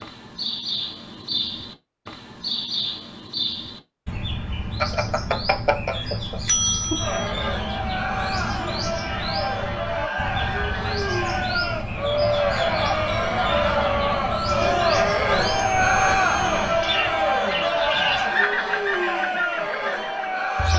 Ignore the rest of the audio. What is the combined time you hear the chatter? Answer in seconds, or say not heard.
14 s.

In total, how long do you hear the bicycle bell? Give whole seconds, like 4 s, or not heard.
4 s.